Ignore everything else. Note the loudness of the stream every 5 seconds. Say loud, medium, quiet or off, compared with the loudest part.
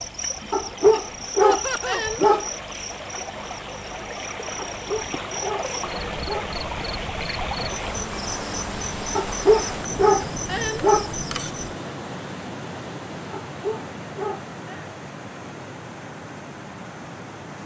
medium, loud, loud, medium.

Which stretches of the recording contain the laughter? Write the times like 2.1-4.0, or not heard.
1.4-2.0.